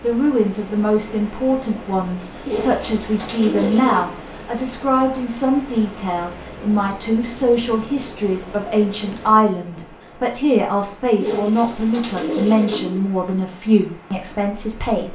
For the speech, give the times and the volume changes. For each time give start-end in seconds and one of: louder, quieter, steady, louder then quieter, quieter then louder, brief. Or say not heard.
0.0-15.1 steady.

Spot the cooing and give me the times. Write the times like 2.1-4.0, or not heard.
2.5-4.1, 11.2-13.1.